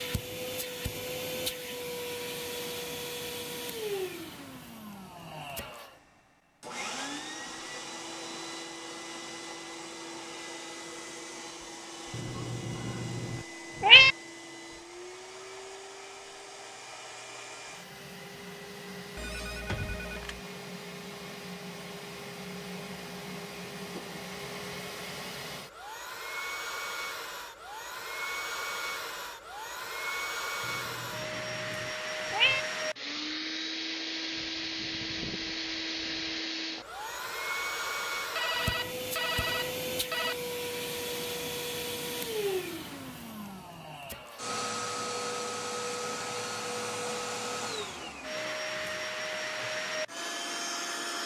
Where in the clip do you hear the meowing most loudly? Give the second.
14 s.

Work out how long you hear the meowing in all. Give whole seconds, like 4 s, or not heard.
4 s.